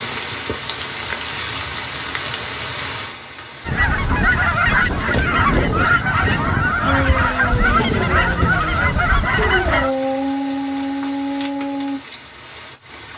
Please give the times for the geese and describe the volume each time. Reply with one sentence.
You can hear the geese from 3.6 to 9.9 s, at a steady volume.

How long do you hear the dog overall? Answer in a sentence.
The dog can be heard for 5 seconds in total.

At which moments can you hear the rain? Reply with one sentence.
The rain can be heard from 0.0 to 13.1 s.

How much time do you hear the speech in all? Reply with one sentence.
You can't hear the speech here.